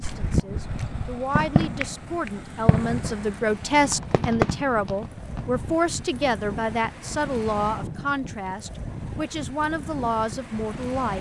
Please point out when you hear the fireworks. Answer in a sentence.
You can hear the fireworks from 0.0 to 5.6 s.